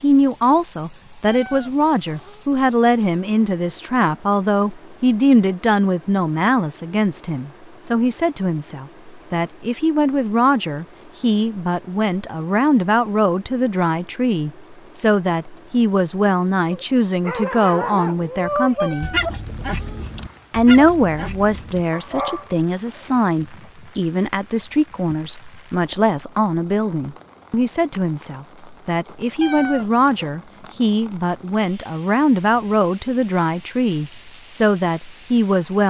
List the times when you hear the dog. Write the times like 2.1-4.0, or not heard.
16.7-23.7.